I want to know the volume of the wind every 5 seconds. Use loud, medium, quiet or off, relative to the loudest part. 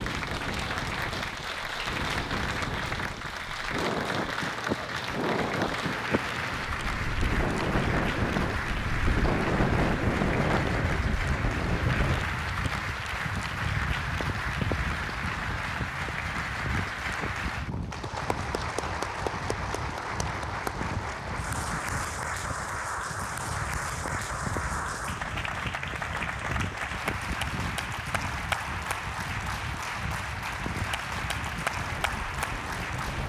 medium, loud, loud, medium, medium, medium, medium.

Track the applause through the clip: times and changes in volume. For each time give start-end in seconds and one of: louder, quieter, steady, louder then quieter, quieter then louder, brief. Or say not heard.
0.0-33.2 steady.